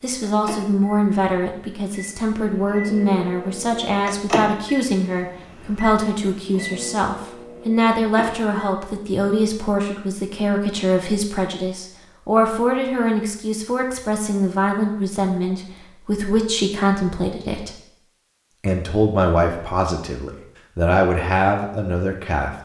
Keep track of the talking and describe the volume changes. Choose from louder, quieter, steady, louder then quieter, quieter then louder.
steady.